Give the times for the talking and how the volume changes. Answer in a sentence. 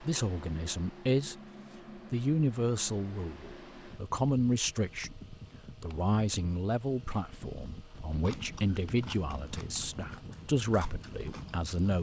The talking can be heard briefly from 0.0 to 1.4 s; and from 2.1 to 11.9 s, at a steady volume.